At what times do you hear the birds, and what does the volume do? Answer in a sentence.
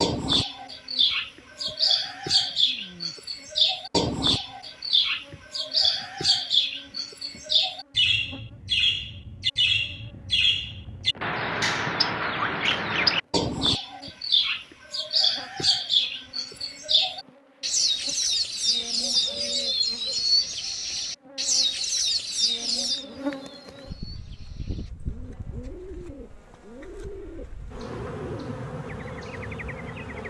You can hear the birds from 0.0 to 30.2 s, getting quieter.